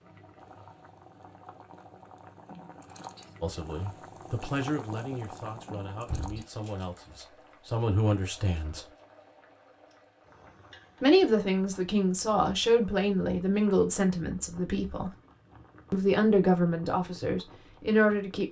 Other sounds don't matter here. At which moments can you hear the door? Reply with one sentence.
The door can be heard from 6.0 to 6.5 s.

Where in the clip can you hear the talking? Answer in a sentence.
The talking can be heard from 3.4 to 8.9 s, from 11.0 to 15.2 s and from 15.9 to 18.4 s.